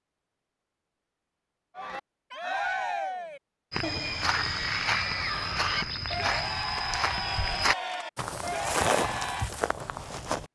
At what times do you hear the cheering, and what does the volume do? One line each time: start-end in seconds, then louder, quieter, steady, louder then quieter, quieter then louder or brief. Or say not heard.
1.8-9.5 steady.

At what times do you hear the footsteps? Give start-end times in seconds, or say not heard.
3.7-10.4.